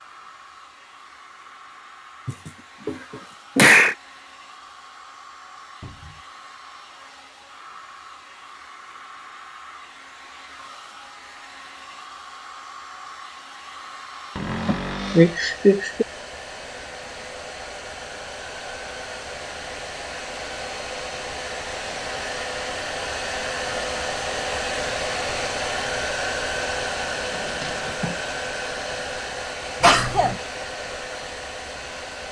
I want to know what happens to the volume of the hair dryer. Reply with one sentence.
The loudness of the hair dryer goes up.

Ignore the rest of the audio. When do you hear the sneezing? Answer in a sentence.
You can hear the sneezing from 2.2 to 3.0 s, from 3.5 to 4.0 s, from 14.7 to 16.1 s and from 29.8 to 30.4 s.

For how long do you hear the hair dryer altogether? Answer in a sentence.
The hair dryer can be heard for 32 seconds in total.